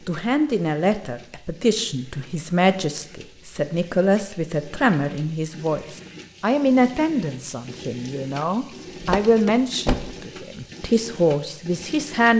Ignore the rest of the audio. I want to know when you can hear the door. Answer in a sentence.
You can hear the door from 9.0 to 10.1 s.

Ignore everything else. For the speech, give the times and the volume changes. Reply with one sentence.
The speech can be heard from 0.1 to 12.3 s, at a steady volume.